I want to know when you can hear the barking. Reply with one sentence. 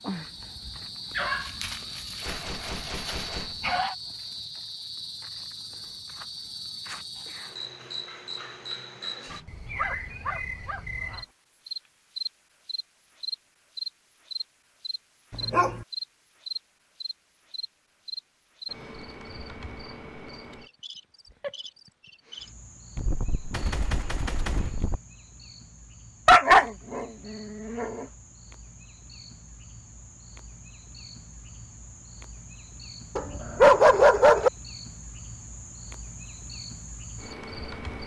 You can hear the barking from 1.1 to 4.0 s, from 9.7 to 11.2 s, from 15.3 to 15.8 s, from 26.2 to 28.1 s and from 33.1 to 34.5 s.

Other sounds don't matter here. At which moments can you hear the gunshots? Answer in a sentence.
The gunshots can be heard from 2.2 to 3.6 s and from 22.9 to 25.0 s.